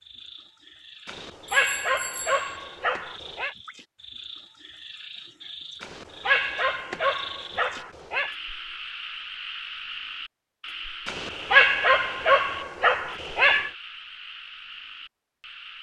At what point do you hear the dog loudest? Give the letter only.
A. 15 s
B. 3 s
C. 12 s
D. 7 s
C.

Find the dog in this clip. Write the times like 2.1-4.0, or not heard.
1.1-3.5, 5.8-8.3, 11.1-13.7.